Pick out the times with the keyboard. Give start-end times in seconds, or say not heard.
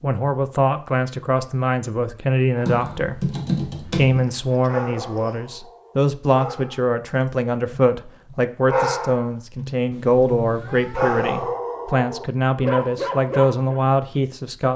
2.6-4.2.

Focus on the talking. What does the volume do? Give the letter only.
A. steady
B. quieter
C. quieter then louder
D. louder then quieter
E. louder
A.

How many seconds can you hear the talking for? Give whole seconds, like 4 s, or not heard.
15 s.